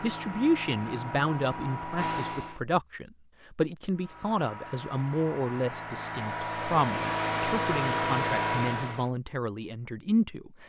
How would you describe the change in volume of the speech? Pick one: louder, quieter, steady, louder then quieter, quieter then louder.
steady.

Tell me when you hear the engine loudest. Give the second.
8 s.